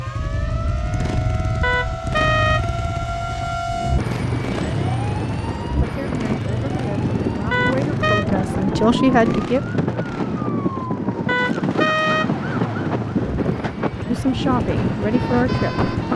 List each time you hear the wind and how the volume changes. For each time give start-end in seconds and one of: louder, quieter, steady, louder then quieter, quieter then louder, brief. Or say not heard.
0.0-16.1 louder.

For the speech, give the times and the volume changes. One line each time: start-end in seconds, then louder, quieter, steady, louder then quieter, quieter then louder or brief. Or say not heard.
5.6-9.6 louder
14.1-16.1 brief.